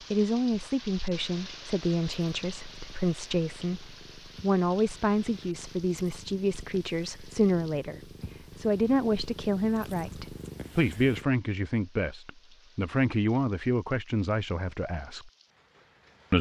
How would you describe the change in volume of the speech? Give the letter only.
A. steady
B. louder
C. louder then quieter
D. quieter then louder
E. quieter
A.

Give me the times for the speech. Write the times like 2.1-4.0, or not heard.
0.1-15.3.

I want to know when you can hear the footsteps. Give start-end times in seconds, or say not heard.
not heard.